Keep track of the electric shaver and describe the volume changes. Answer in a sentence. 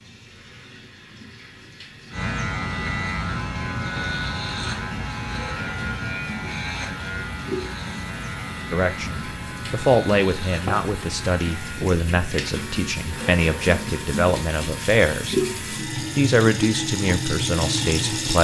The loudness of the electric shaver goes down.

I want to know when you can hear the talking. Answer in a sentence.
The talking can be heard from 8.7 to 18.4 s.